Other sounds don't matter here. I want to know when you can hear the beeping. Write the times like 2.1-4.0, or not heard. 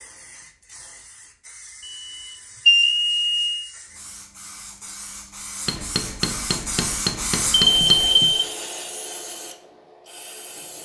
1.9-3.5, 7.6-8.6.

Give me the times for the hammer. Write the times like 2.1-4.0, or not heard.
5.7-8.2.